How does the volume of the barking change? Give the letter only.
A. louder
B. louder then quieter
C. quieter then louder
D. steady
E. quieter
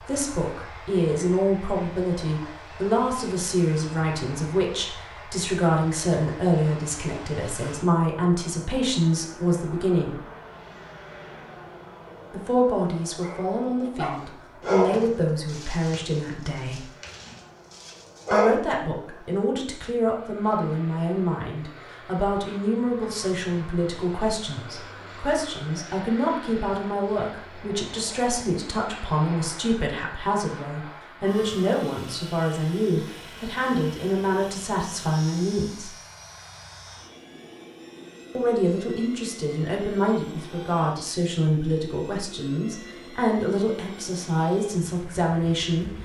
B.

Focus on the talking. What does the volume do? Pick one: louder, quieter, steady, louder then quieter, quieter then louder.
steady.